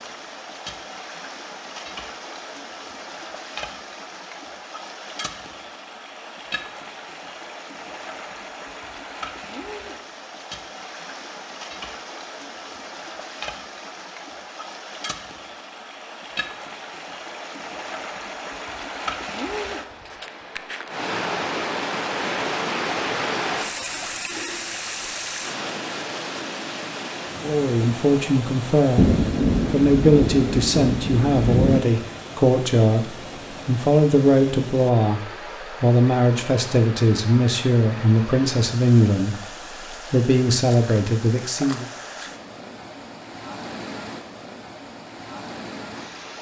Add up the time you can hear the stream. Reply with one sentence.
The stream can be heard for 46 seconds in total.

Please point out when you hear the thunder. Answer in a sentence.
You can hear the thunder from 28.9 to 31.9 s.